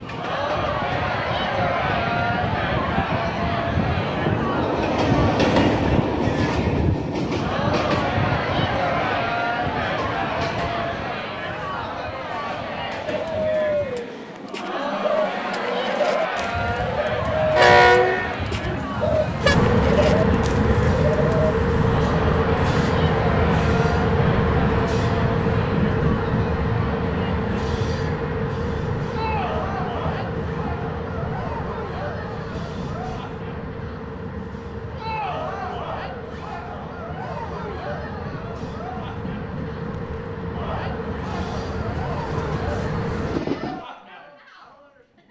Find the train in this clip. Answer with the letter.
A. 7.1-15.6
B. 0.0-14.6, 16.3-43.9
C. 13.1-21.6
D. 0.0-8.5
B.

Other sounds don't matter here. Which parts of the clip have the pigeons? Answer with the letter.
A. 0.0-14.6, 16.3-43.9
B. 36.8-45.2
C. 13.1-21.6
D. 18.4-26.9
C.